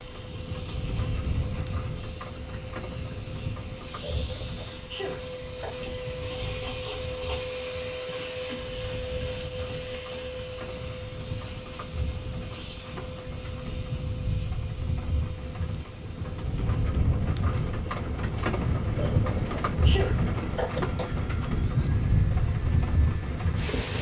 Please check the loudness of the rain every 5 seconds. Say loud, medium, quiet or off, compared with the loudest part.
medium, quiet, medium, loud, loud.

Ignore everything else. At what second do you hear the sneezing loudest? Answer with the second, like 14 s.
20 s.